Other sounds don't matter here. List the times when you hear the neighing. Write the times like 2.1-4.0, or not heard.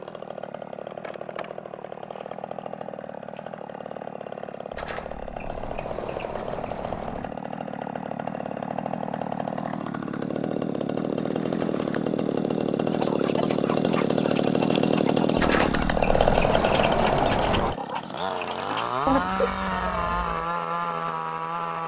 not heard.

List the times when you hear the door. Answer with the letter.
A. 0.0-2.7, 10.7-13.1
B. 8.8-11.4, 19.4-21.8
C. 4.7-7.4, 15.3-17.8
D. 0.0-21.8
C.